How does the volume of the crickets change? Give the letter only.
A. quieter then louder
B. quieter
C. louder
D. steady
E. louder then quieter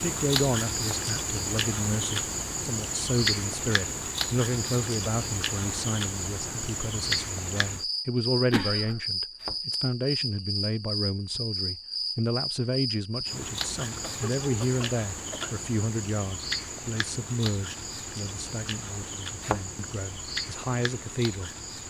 B.